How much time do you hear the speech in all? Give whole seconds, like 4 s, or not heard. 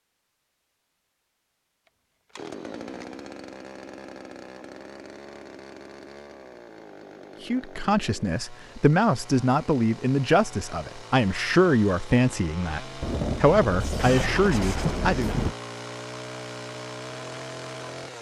8 s.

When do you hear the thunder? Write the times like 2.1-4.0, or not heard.
13.0-15.6.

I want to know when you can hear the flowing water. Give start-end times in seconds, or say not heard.
not heard.